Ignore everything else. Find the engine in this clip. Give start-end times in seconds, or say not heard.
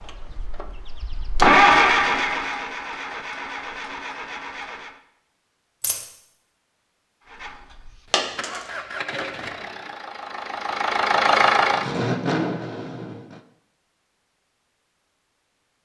0.0-5.0, 7.2-13.4.